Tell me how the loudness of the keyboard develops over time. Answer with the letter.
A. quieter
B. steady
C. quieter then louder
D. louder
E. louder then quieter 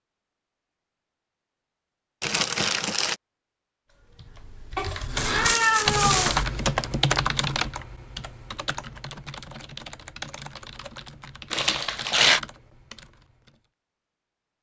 A.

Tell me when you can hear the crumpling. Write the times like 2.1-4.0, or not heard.
2.2-3.1, 5.2-6.5, 11.5-12.4.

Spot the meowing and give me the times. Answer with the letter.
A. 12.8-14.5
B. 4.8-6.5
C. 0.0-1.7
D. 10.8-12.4
B.